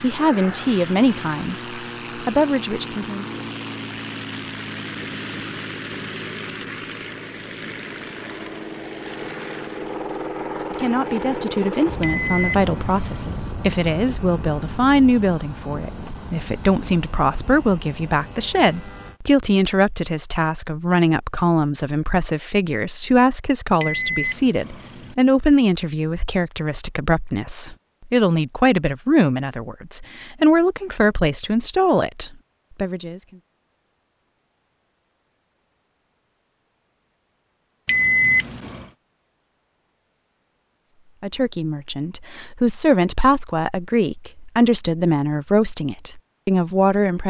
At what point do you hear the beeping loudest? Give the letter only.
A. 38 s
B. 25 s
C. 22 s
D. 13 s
A.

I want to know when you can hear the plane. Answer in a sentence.
You can hear the plane from 0.0 to 19.2 s.